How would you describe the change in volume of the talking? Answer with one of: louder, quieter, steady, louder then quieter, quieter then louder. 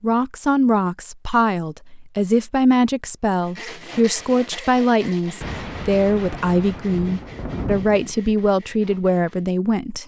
steady.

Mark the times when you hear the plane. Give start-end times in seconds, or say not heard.
not heard.